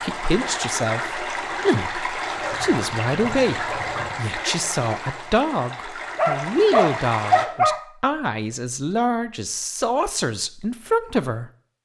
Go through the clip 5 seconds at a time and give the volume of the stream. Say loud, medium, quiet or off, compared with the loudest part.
loud, loud, off.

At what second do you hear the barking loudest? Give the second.
7 s.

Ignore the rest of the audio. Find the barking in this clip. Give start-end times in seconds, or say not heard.
2.4-4.2, 6.2-7.8.